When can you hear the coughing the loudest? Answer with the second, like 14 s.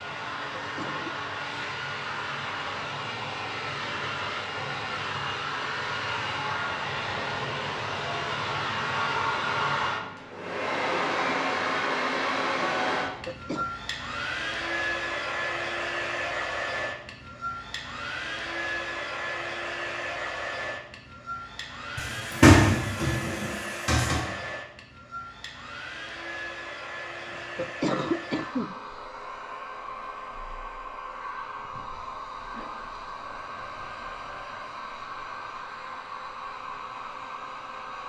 28 s.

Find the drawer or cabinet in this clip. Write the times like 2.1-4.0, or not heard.
21.9-24.2.